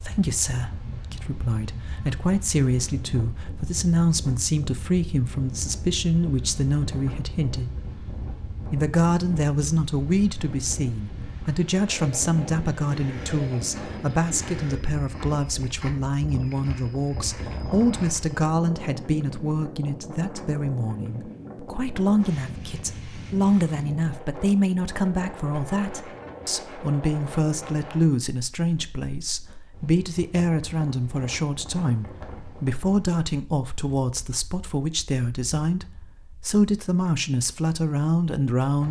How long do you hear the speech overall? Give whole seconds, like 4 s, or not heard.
38 s.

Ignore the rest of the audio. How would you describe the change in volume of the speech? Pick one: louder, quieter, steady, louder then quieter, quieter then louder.
steady.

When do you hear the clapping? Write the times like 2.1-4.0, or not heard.
not heard.